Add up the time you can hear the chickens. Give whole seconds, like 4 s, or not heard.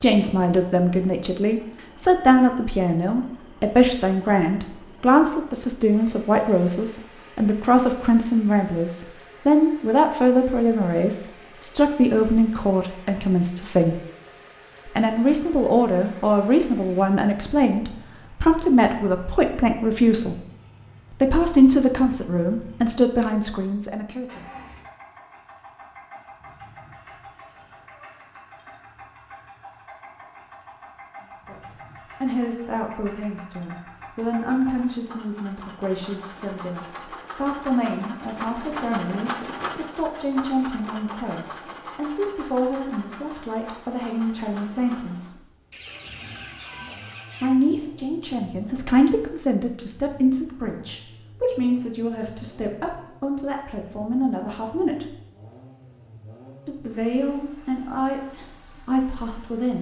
2 s.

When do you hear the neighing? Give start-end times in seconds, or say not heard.
not heard.